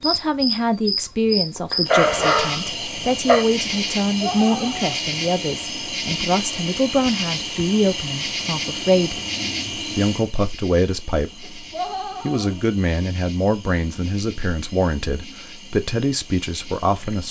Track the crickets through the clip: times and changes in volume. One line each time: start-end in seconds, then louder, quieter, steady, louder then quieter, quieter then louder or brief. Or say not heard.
0.0-17.2 quieter.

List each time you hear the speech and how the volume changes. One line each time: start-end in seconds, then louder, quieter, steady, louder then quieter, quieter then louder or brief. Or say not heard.
0.0-17.2 steady.